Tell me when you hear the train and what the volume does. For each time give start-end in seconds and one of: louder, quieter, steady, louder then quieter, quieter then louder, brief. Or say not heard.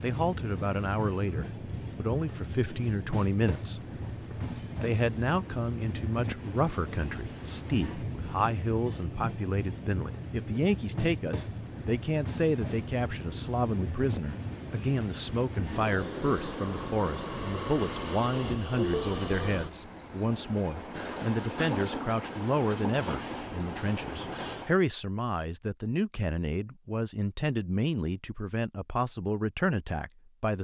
0.0-24.8 steady.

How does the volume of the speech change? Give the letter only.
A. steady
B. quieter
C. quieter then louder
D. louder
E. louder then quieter
A.